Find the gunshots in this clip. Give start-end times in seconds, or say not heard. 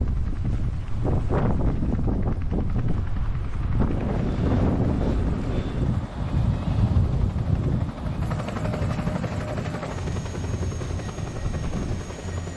not heard.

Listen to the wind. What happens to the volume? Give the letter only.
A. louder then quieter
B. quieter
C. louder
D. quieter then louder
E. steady
B.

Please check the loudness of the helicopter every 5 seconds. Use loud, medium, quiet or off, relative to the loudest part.
medium, loud, loud.